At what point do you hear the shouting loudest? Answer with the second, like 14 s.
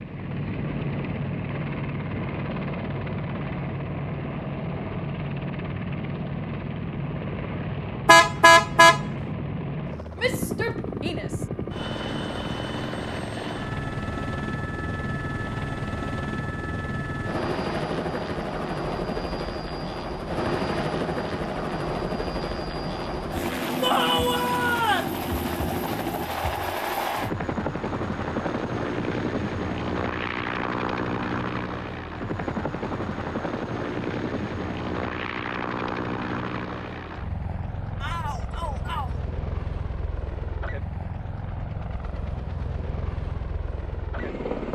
24 s.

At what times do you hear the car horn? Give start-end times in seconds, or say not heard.
8.1-9.0.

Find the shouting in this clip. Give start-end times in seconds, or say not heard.
10.2-11.4, 23.8-25.1, 38.0-39.2.